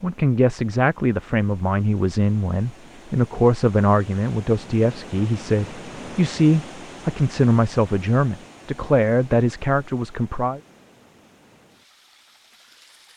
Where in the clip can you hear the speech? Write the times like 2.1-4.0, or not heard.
0.0-10.6.